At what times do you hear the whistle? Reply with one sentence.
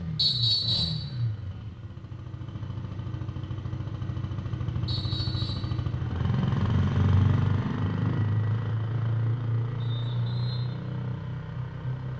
The whistle can be heard from 0.1 to 1.1 s, from 4.8 to 5.7 s and from 9.8 to 10.6 s.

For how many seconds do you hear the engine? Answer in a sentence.
The engine can be heard for 12 seconds in total.